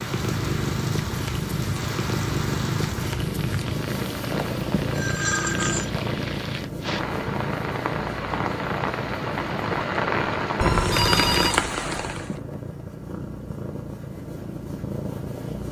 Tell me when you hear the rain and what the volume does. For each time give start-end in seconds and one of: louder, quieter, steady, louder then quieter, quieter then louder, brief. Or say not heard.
0.0-12.4 louder.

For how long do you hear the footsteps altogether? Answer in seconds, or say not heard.
not heard.